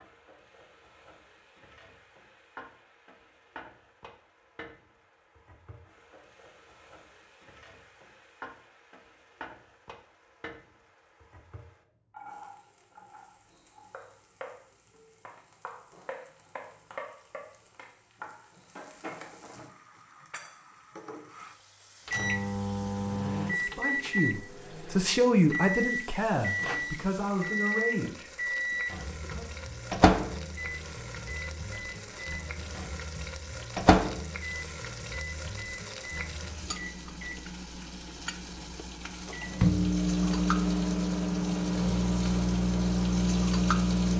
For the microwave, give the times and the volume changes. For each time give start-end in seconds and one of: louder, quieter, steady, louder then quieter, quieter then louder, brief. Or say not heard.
22.1-44.1 quieter then louder.